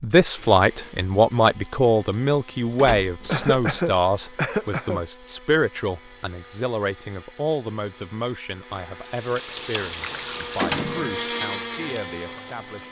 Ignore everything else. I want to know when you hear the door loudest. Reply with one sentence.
The volume of the door peaks at 4 seconds.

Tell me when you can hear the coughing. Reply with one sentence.
The coughing can be heard from 3.2 to 5.0 s.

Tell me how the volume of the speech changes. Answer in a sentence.
The loudness of the speech goes down.